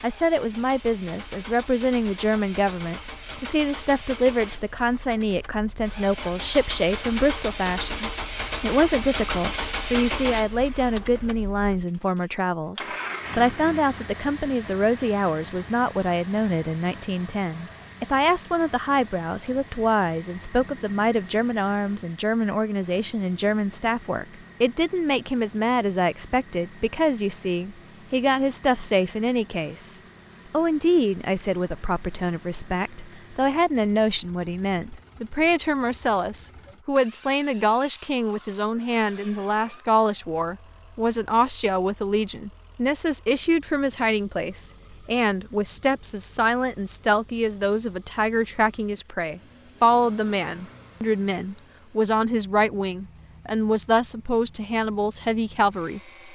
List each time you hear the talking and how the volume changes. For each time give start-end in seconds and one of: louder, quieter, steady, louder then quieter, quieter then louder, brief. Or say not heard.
0.0-56.3 steady.